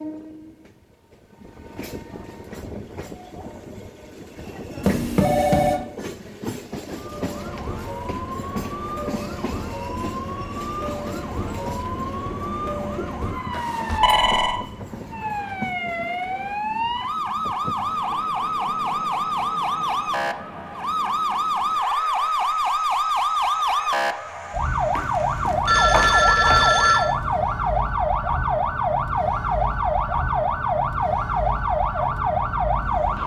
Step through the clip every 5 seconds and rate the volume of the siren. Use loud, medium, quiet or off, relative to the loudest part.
off, medium, medium, loud, loud, loud, loud.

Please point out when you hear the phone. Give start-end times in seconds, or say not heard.
4.8-5.8, 13.5-14.6, 24.9-27.1.